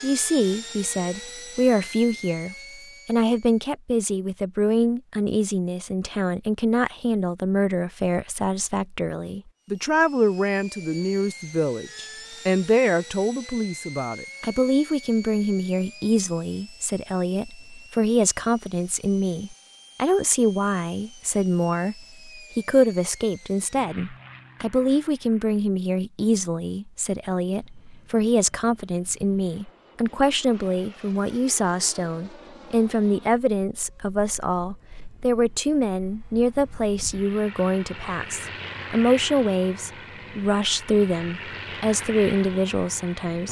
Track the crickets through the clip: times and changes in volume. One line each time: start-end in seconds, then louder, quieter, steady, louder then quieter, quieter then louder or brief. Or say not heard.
not heard.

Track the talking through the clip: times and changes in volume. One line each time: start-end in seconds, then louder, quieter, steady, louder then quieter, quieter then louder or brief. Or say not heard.
0.0-43.4 steady.